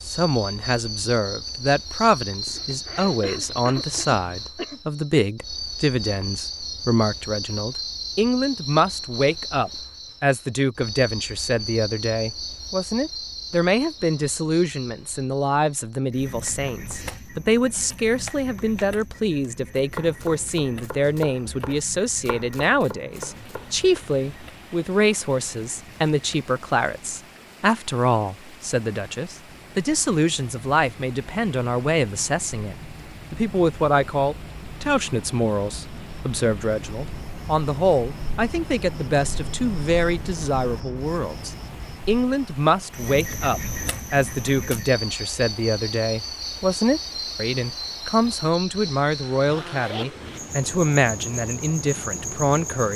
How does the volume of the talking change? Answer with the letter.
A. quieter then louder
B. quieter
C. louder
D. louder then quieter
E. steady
E.